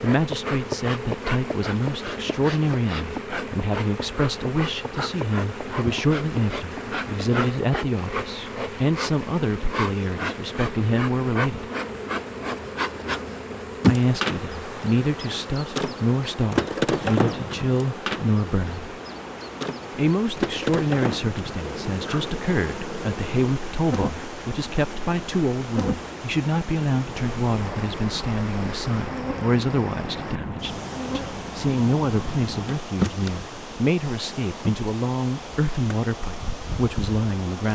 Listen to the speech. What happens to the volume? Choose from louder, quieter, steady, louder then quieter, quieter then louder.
steady.